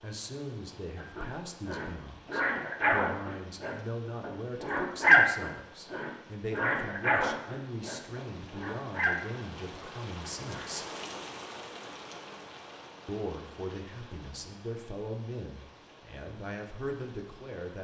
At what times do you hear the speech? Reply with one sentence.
The speech can be heard from 0.0 to 10.8 s and from 13.1 to 17.7 s.